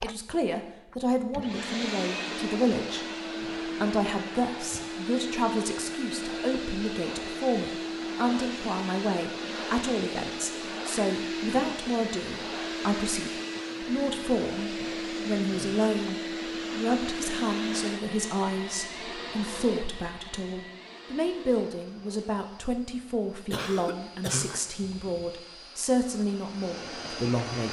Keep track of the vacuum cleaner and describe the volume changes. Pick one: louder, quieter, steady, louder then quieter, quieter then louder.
quieter.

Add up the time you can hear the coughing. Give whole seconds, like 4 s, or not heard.
3 s.